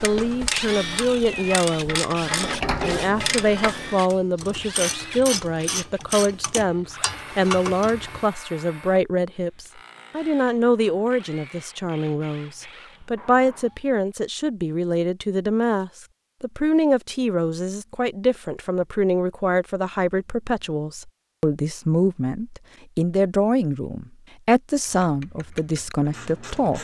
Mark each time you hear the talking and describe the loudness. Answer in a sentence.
The talking can be heard from 0.0 to 26.7 s, at a steady volume.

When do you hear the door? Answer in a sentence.
The door can be heard from 2.4 to 4.0 s.